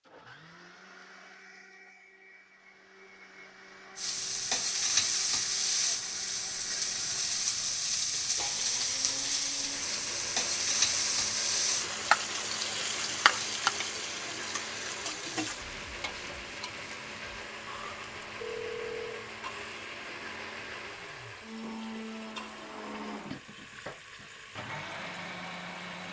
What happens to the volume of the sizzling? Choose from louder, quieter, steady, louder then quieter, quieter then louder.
quieter.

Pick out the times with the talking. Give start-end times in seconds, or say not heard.
not heard.